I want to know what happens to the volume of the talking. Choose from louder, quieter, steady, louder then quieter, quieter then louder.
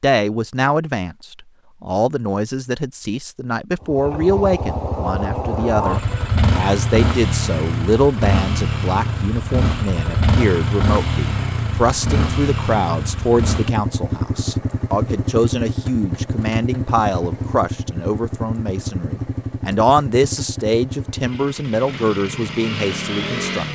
steady.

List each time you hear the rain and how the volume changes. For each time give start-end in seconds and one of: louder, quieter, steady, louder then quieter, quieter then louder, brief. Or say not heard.
not heard.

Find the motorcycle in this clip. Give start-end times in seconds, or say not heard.
3.8-23.7.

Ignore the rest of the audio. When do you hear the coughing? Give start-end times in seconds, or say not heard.
not heard.